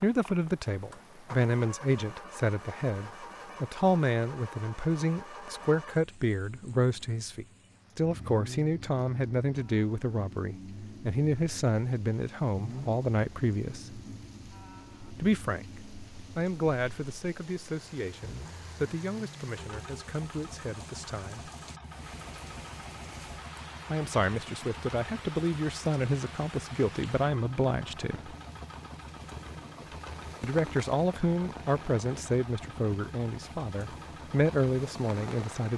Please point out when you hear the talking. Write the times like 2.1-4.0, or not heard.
0.0-14.0, 15.2-15.7, 16.4-21.5, 23.9-28.4, 30.4-35.7.